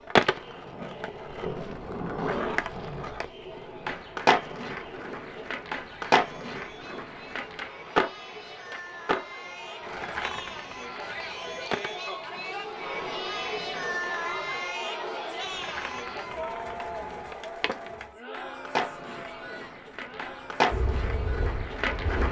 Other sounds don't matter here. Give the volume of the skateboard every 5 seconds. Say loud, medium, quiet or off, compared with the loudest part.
loud, loud, quiet, medium, loud.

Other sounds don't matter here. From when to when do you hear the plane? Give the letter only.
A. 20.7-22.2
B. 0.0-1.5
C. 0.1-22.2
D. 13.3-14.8
A.